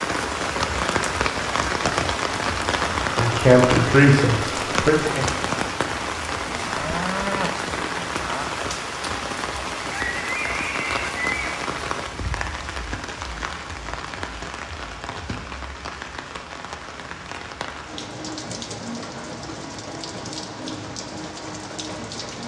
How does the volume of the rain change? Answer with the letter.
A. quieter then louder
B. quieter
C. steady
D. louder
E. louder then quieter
B.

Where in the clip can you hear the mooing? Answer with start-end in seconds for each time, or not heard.
6.5-8.4.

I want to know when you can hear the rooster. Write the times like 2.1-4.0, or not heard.
9.9-11.6.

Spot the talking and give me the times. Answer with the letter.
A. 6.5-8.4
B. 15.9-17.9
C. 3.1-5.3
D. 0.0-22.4
C.